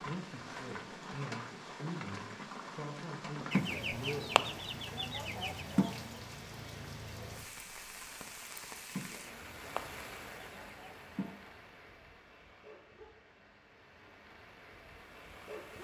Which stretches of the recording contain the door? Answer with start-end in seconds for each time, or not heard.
not heard.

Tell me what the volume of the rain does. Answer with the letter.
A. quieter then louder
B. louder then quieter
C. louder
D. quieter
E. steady
D.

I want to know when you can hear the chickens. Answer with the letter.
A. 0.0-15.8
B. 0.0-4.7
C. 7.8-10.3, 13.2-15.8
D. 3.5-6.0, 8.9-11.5
D.